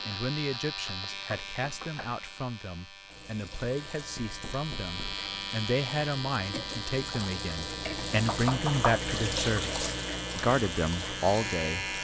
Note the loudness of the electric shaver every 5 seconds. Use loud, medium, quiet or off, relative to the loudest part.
medium, loud, loud.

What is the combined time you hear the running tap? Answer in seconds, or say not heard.
9 s.